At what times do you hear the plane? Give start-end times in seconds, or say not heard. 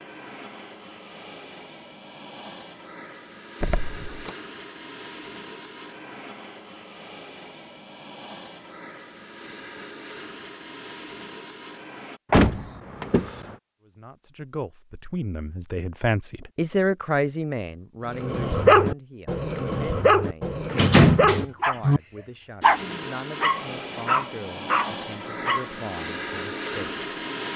0.0-12.2, 22.6-27.5.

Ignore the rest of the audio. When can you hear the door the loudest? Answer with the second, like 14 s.
21 s.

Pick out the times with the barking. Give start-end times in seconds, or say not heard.
18.1-21.8, 22.6-25.7.